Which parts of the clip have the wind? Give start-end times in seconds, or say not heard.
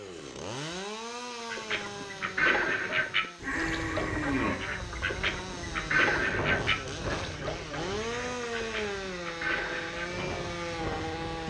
3.6-11.4.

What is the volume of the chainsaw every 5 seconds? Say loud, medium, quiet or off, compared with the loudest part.
medium, loud, loud.